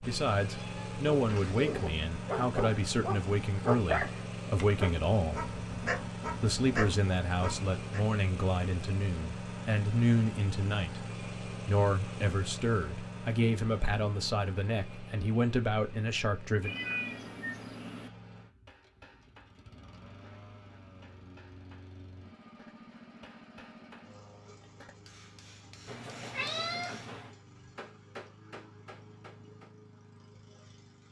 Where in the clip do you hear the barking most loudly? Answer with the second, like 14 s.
4 s.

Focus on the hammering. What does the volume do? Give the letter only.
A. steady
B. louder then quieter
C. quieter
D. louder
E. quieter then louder
D.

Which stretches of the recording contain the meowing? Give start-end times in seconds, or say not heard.
0.4-1.6, 16.6-18.1, 25.9-27.3.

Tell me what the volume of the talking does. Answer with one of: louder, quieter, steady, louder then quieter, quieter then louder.
steady.